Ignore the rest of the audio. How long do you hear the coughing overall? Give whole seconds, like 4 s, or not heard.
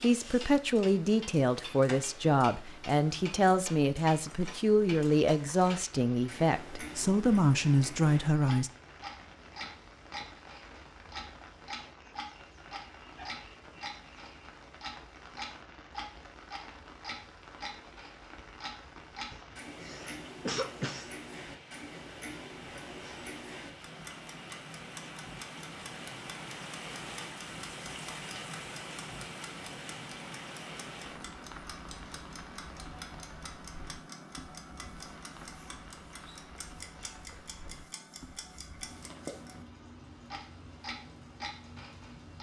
2 s.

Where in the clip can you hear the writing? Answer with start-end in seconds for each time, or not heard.
not heard.